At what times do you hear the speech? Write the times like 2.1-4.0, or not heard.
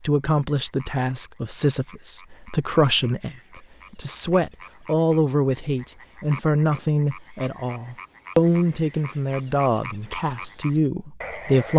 0.1-11.7.